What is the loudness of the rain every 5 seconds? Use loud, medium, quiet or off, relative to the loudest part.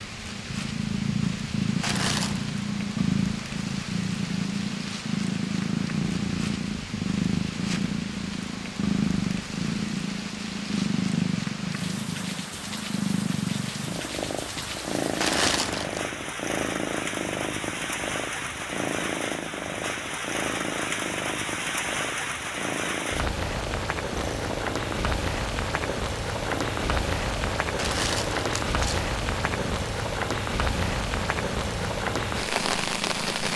medium, medium, medium, medium, loud, loud, loud.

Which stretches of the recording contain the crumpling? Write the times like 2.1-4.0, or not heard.
1.8-2.5, 15.2-16.0, 27.8-29.0.